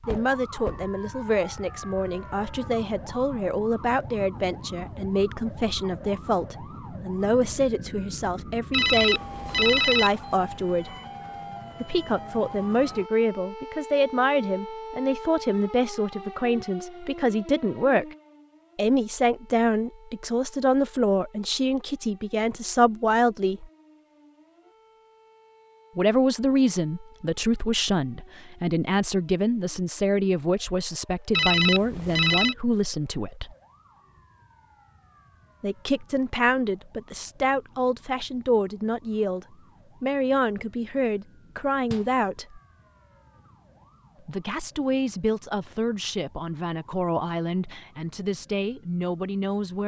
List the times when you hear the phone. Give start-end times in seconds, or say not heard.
8.7-10.1, 31.3-32.5.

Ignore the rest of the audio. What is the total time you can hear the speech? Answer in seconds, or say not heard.
42 s.